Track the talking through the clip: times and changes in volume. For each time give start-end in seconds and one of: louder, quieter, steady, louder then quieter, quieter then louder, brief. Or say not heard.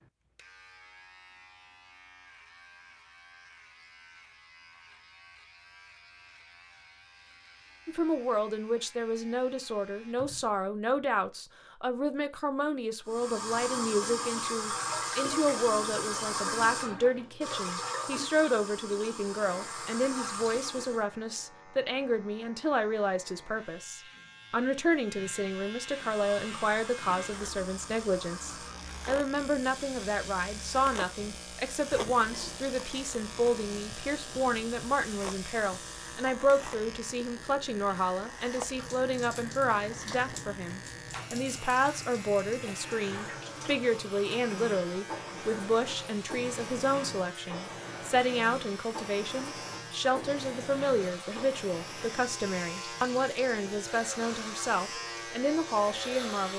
7.8-56.5 steady.